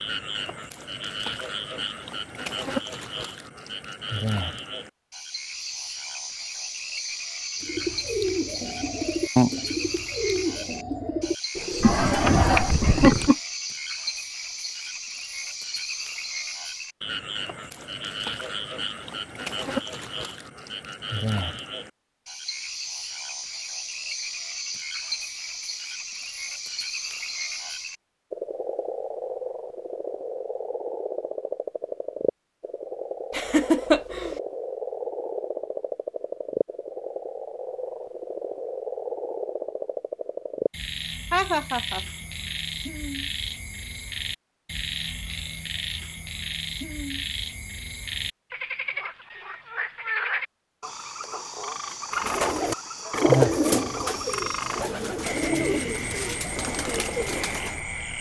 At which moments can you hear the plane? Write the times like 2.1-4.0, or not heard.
not heard.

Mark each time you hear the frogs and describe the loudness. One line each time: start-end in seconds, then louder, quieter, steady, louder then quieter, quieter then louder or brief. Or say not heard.
0.0-58.1 steady.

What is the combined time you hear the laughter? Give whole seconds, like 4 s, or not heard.
3 s.